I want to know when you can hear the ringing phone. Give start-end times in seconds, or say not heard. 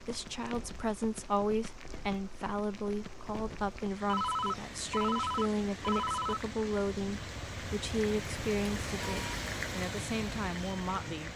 4.0-6.5.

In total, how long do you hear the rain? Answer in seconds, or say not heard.
11 s.